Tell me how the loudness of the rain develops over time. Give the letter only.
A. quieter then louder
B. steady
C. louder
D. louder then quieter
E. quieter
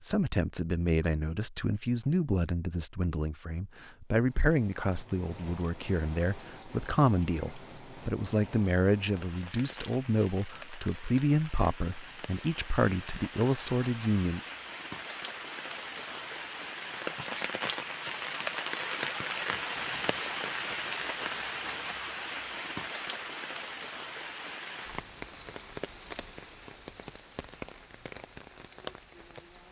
D.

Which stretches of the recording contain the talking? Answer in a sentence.
You can hear the talking from 0.0 to 14.4 s.